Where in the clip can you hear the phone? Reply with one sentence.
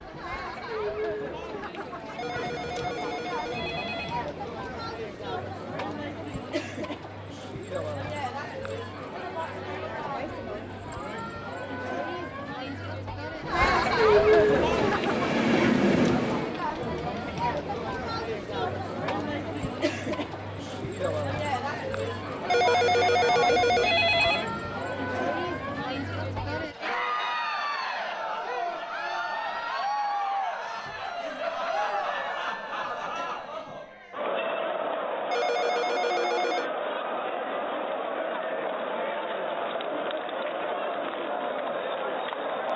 You can hear the phone from 2.1 to 4.2 s, from 22.4 to 24.4 s and from 35.3 to 36.7 s.